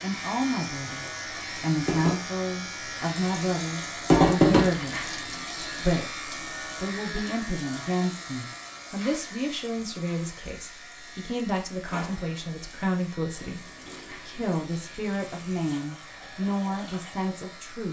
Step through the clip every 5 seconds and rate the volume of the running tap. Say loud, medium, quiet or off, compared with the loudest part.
loud, quiet, quiet, quiet.